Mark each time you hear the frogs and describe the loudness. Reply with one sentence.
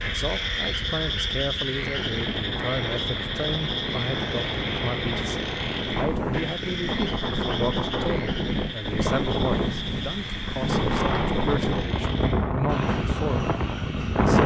The frogs can be heard from 0.0 to 14.4 s, getting quieter.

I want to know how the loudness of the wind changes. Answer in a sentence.
The volume of the wind goes up.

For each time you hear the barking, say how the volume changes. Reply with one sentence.
You can't hear the barking here.